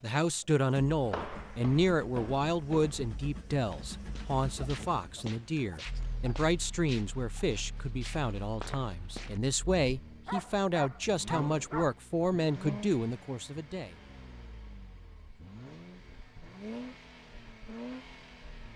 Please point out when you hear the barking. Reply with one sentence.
The barking can be heard from 10.2 to 11.9 s.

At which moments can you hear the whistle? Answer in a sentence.
You can't hear the whistle here.